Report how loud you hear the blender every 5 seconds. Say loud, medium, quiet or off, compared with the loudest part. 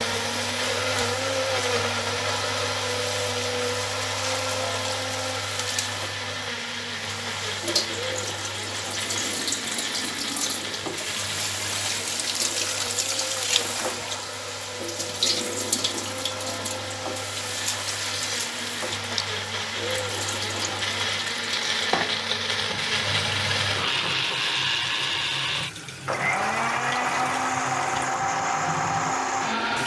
loud, medium, medium, medium, loud, loud.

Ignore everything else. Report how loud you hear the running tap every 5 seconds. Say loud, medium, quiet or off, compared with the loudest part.
medium, loud, loud, loud, medium, medium.